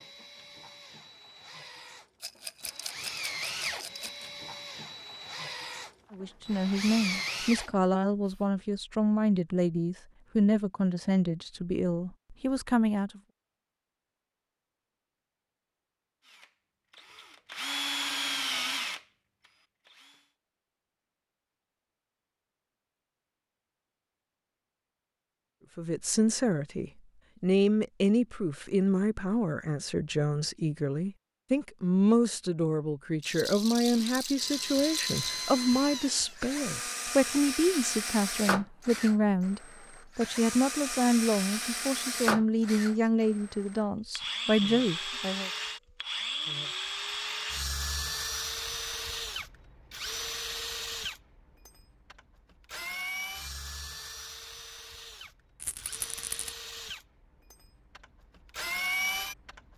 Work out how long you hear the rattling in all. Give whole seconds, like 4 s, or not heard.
5 s.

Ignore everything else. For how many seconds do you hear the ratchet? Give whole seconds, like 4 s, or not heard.
not heard.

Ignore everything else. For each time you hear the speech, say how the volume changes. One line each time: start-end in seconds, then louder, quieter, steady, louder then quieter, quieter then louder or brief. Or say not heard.
6.1-13.2 steady
25.8-45.5 steady.